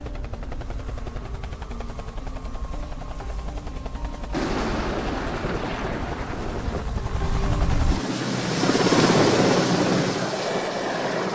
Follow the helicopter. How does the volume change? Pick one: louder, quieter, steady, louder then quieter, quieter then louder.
louder.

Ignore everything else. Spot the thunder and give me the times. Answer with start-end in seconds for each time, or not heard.
4.3-6.8.